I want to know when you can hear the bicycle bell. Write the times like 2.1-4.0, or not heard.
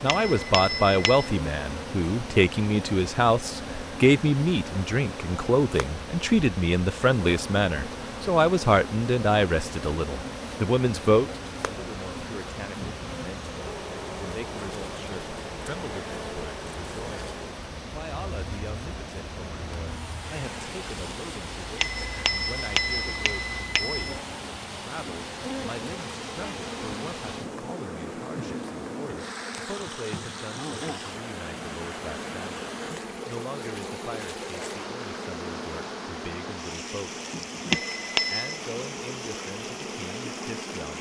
0.1-1.3, 21.8-24.2, 37.7-38.6.